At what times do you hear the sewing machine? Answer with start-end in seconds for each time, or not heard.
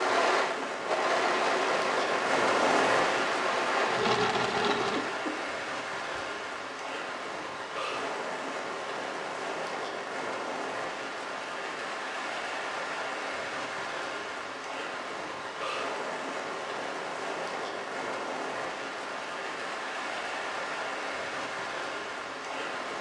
0.0-5.1.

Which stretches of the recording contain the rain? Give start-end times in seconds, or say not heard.
0.0-22.9.